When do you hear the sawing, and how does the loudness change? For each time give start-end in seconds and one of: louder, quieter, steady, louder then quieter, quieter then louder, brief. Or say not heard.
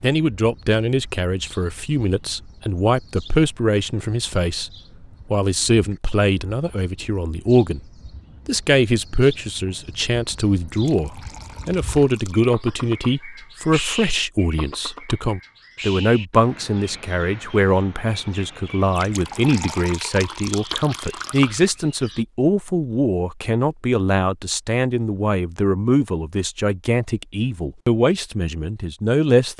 not heard.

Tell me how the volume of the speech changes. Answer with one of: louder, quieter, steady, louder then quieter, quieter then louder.
steady.